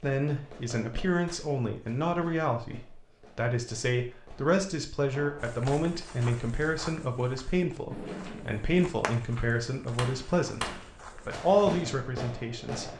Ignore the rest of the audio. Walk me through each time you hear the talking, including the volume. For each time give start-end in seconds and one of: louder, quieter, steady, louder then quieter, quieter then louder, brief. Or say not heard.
0.0-12.9 steady.